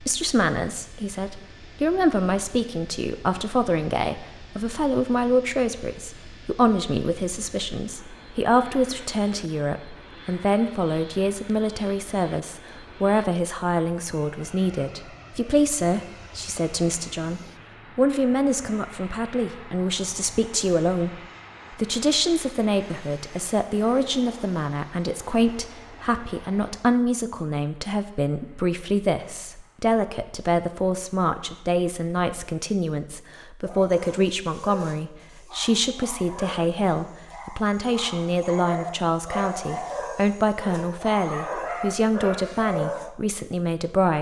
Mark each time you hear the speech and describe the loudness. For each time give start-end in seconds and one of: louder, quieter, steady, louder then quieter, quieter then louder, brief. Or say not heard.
0.0-44.1 steady.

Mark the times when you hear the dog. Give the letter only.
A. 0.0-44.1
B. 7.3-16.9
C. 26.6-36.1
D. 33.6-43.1
D.